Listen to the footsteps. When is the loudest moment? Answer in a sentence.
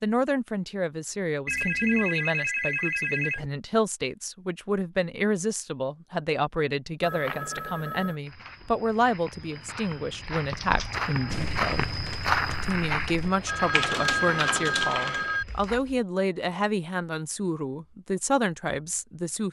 The volume of the footsteps peaks at 12 seconds.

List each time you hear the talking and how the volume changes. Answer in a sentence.
The talking can be heard from 0.0 to 11.9 s, at a steady volume; and from 12.6 to 19.4 s, at a steady volume.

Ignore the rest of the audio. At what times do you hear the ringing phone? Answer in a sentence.
The ringing phone can be heard from 1.4 to 3.5 s, from 7.0 to 8.2 s and from 13.4 to 15.4 s.